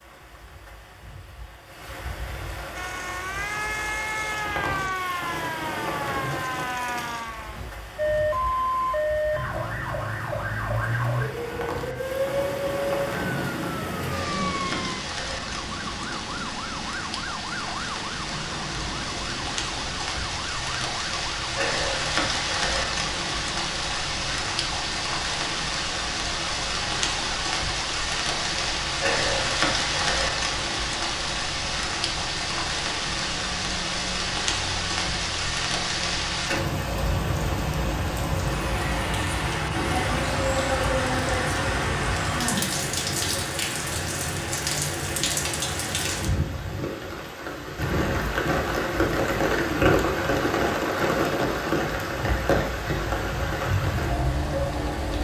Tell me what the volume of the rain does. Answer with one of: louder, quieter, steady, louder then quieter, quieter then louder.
louder.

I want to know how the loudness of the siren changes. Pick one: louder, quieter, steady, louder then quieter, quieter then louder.
quieter.